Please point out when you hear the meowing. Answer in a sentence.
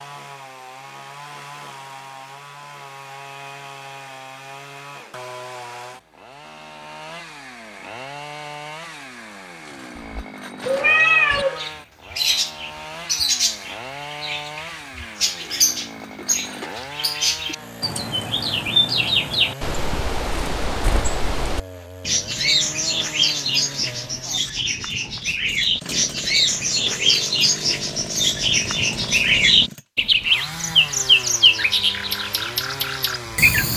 The meowing can be heard from 9.9 to 11.7 s.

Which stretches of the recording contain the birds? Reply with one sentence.
The birds can be heard from 11.3 to 33.7 s.